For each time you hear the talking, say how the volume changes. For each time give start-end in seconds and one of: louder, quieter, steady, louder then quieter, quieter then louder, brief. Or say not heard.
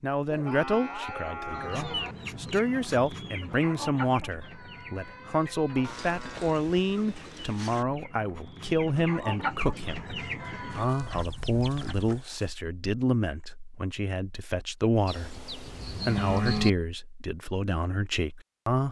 0.0-18.8 steady.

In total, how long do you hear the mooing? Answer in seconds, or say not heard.
7 s.